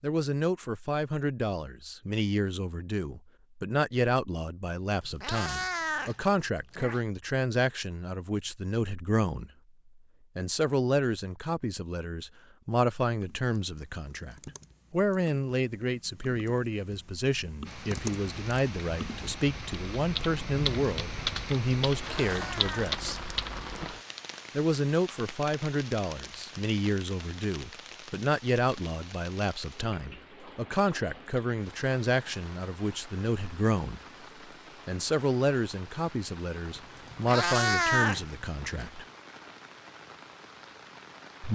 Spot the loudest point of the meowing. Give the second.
38 s.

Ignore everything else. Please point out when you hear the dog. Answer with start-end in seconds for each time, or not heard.
not heard.